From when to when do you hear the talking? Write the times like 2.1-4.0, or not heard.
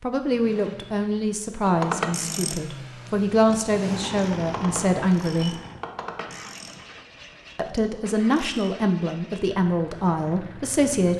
0.0-5.6, 7.5-11.1.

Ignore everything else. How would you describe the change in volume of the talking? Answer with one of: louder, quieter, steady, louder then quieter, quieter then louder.
steady.